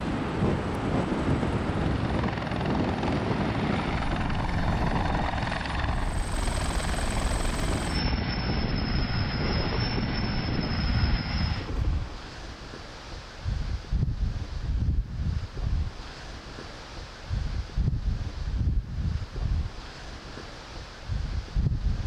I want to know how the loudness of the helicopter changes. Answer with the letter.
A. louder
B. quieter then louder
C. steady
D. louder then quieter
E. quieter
C.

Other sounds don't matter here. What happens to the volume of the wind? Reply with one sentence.
The loudness of the wind goes down.